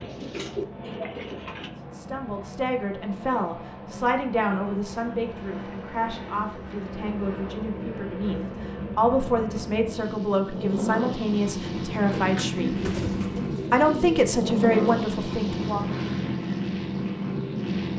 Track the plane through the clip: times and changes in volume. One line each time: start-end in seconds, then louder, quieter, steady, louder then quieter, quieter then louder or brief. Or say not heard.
0.0-17.9 louder.